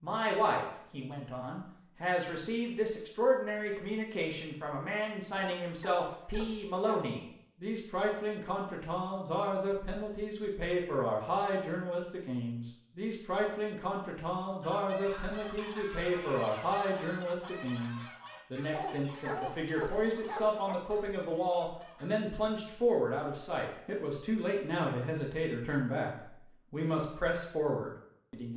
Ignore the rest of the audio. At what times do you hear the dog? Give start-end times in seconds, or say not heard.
5.3-7.2, 18.8-20.8.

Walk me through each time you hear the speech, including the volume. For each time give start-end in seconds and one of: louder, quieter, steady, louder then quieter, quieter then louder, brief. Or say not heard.
0.0-26.1 steady
26.7-28.5 brief.